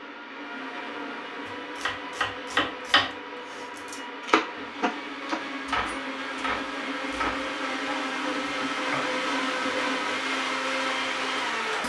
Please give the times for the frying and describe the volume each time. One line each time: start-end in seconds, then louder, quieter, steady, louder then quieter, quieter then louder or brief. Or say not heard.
not heard.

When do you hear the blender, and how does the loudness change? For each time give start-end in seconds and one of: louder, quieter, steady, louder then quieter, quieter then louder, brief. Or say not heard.
0.0-11.8 louder.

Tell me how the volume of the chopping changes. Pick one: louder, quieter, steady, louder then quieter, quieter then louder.
quieter.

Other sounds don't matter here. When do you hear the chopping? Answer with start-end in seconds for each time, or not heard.
1.4-9.2.